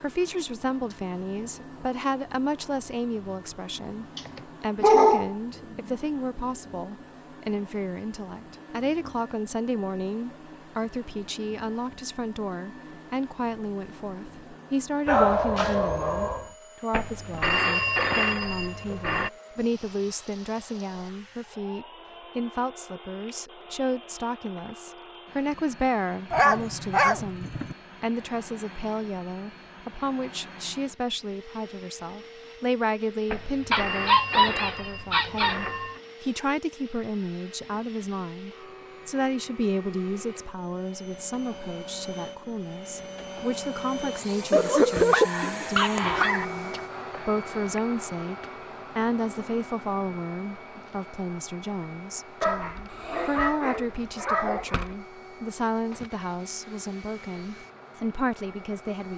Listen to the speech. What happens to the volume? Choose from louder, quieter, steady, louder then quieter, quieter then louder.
steady.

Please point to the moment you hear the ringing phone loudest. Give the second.
18 s.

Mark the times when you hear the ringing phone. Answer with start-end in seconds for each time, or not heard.
16.9-19.3, 33.2-36.0.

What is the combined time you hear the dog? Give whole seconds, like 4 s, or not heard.
11 s.